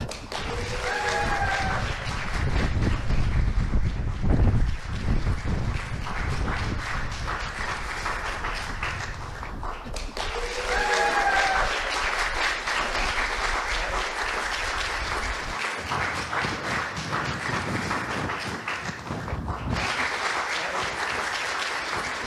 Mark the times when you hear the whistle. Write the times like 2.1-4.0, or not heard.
not heard.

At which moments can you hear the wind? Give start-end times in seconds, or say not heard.
0.0-22.2.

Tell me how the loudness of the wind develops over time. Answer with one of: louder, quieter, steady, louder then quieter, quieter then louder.
quieter then louder.